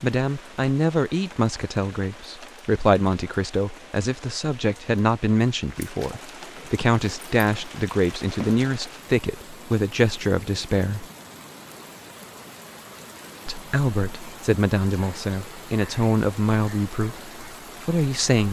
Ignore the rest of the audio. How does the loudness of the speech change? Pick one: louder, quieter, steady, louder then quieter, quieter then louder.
steady.